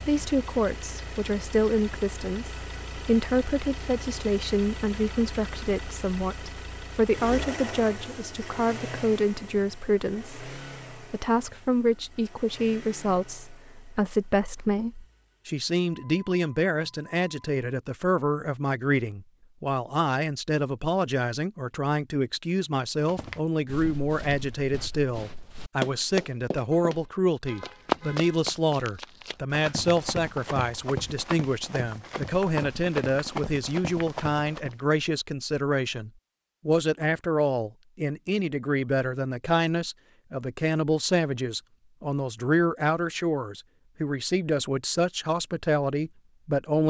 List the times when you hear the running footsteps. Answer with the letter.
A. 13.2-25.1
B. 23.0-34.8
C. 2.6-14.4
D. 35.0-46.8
B.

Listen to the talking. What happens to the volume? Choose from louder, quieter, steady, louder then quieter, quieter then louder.
steady.